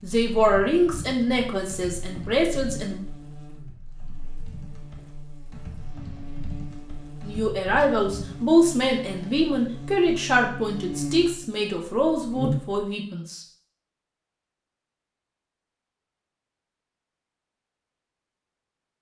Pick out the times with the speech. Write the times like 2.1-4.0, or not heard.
0.0-3.0, 7.2-13.4.